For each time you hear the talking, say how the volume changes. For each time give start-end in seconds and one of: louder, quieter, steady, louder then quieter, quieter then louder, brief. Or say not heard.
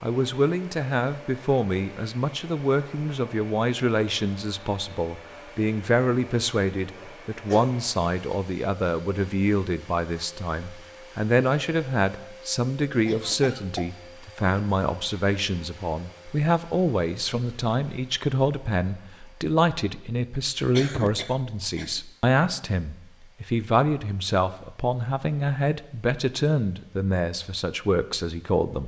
0.0-28.8 steady.